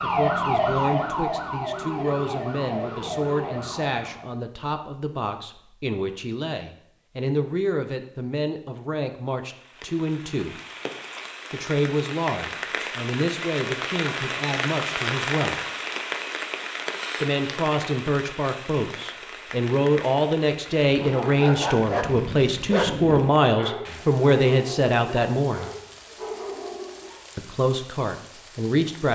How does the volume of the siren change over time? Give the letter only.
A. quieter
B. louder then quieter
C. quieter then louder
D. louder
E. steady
A.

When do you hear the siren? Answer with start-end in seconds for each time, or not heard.
0.0-4.3.